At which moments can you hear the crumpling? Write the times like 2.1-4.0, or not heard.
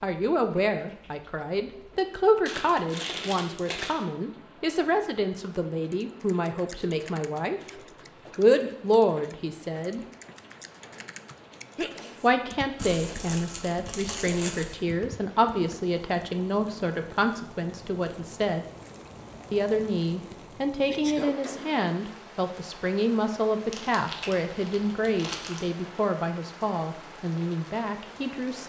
2.5-4.0, 12.8-14.8, 23.7-25.6.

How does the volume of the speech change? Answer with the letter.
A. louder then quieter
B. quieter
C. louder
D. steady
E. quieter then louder
D.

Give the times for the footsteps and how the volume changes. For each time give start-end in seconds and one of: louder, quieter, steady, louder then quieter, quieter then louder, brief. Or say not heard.
not heard.